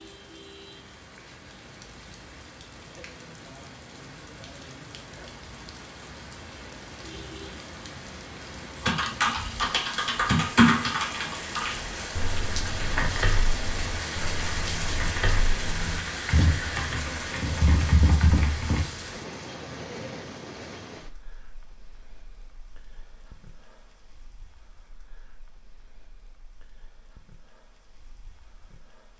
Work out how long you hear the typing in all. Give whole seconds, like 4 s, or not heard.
10 s.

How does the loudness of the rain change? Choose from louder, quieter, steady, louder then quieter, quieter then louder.
louder then quieter.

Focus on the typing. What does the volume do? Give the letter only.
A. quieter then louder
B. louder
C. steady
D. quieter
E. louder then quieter
A.